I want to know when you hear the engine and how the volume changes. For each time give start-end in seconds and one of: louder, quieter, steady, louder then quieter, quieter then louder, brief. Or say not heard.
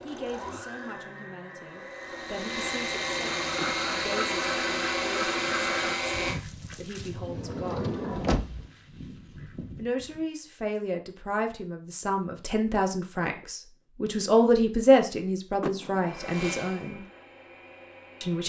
0.0-6.4 louder
16.0-18.4 brief.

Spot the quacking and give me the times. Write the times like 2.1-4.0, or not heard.
3.4-10.2.